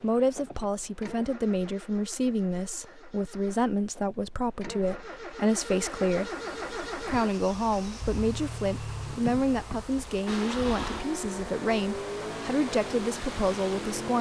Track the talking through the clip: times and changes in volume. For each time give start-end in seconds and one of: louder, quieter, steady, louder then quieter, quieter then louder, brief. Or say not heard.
0.0-6.3 steady
7.0-14.1 steady.